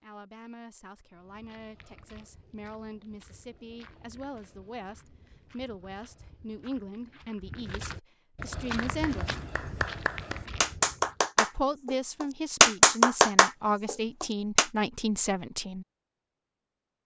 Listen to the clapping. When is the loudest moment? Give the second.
13 s.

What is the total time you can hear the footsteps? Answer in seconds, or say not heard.
10 s.